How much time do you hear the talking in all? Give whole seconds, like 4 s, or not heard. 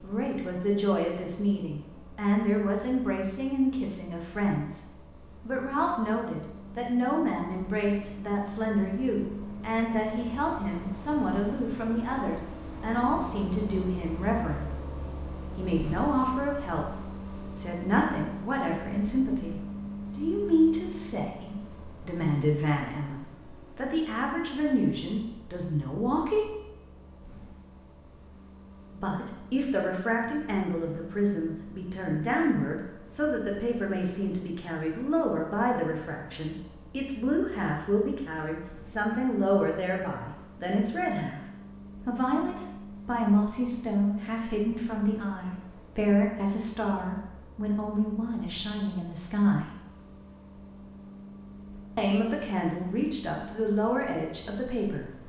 49 s.